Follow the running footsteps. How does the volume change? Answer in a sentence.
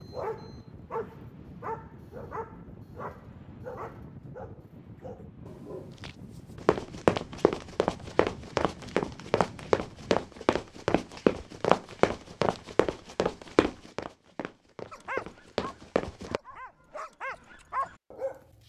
The loudness of the running footsteps goes down.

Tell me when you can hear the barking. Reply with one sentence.
You can hear the barking from 0.0 to 6.7 s and from 14.9 to 18.4 s.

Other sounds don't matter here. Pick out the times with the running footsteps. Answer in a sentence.
The running footsteps can be heard from 6.0 to 16.4 s.